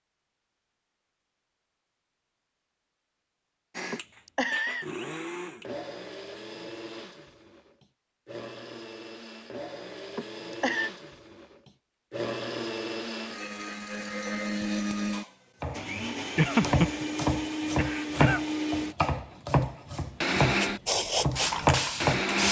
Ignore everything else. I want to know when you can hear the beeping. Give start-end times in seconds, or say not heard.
not heard.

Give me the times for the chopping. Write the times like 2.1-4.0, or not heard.
15.6-22.3.